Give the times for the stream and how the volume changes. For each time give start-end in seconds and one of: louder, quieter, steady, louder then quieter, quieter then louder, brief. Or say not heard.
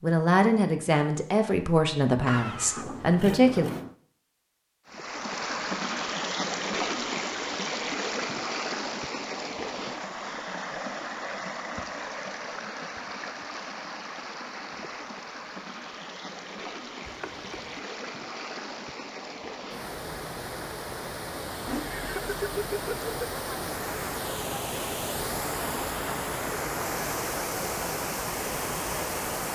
4.8-29.5 quieter then louder.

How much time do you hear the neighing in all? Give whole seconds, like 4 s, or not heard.
4 s.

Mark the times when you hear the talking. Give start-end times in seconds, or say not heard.
0.0-3.7.